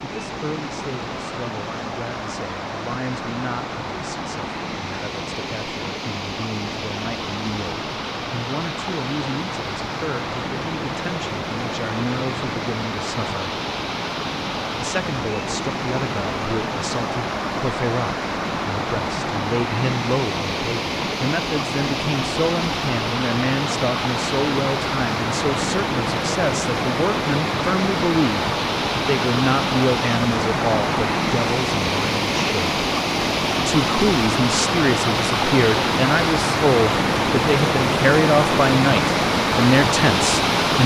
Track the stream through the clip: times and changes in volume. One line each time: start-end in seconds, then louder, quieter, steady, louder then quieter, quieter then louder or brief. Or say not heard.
0.0-40.8 louder.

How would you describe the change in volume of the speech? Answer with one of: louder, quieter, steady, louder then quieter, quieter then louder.
louder.